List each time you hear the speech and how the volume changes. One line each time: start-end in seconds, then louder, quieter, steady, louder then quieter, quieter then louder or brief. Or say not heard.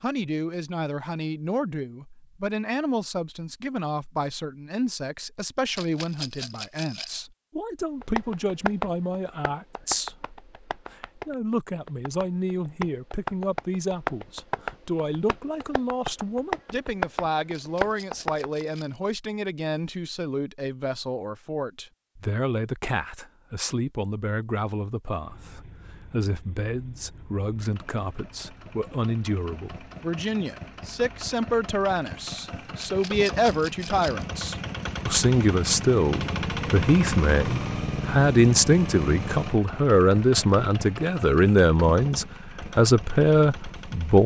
0.0-44.2 louder.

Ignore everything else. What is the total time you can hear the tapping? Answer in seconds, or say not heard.
11 s.